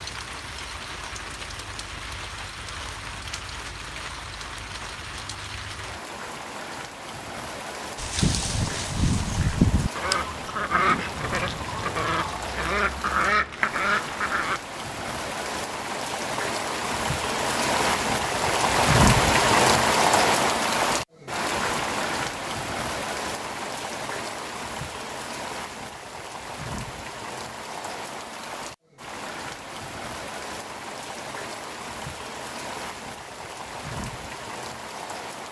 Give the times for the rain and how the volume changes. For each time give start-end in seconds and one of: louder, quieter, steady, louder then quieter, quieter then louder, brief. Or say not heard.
0.0-35.4 louder then quieter.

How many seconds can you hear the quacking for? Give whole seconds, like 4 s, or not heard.
7 s.